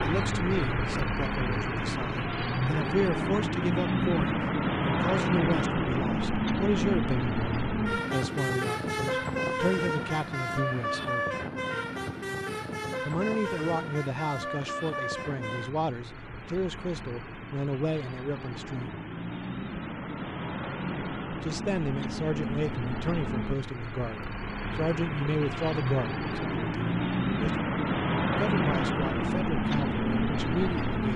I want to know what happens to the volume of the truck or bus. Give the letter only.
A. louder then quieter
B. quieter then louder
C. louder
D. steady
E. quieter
B.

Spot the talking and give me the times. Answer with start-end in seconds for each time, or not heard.
0.0-11.4, 13.1-19.0, 21.4-27.6, 28.4-31.1.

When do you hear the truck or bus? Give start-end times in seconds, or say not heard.
0.0-31.1.